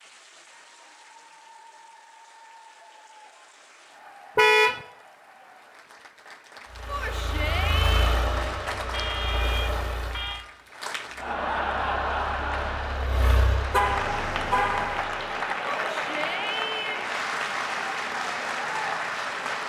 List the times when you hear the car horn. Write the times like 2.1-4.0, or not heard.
4.3-4.8, 8.9-10.4, 13.7-15.0.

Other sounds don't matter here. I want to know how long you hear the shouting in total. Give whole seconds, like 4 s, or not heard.
3 s.